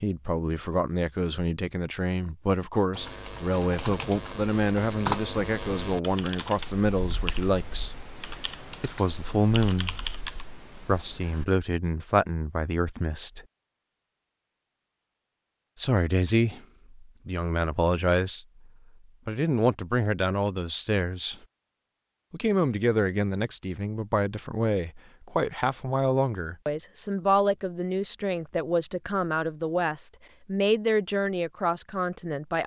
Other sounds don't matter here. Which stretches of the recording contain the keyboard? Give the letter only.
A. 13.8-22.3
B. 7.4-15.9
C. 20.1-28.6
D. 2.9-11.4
D.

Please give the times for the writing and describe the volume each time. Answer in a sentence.
You can't hear the writing here.